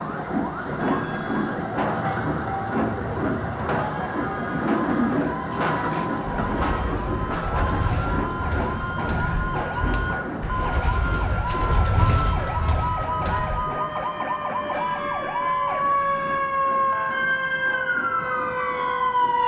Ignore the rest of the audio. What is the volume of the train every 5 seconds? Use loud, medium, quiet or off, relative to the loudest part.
loud, loud, medium, quiet.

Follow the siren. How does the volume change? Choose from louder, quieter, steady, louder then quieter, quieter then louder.
louder.